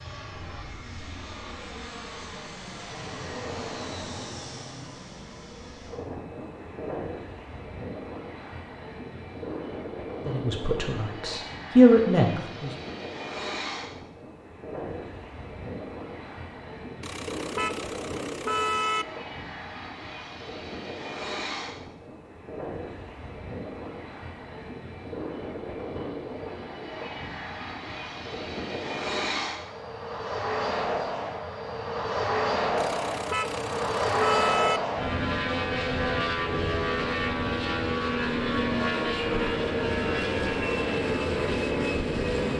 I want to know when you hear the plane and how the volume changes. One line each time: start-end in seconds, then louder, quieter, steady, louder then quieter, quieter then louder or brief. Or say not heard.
0.0-42.5 louder.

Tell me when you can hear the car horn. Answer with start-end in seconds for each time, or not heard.
17.0-19.1, 32.8-34.8.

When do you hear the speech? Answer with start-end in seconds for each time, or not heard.
10.2-12.8.